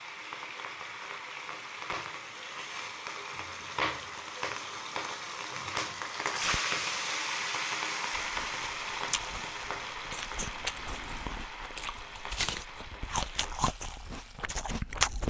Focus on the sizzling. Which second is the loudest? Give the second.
7 s.